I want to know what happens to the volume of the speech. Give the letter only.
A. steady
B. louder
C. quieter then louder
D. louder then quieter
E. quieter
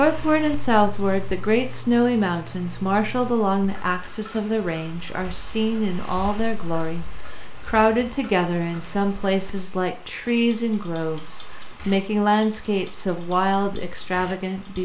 A.